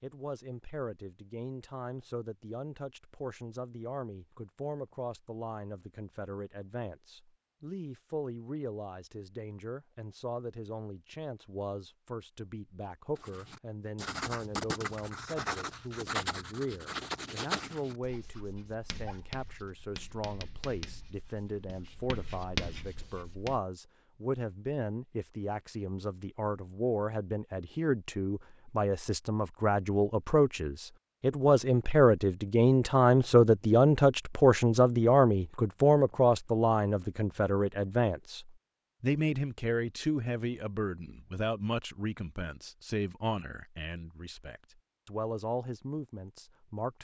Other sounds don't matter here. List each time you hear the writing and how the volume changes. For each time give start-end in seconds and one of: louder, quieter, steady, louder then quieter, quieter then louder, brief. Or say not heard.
13.2-23.6 quieter then louder.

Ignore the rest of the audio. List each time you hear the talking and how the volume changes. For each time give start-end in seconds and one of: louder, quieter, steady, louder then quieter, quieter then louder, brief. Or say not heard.
0.0-47.0 louder then quieter.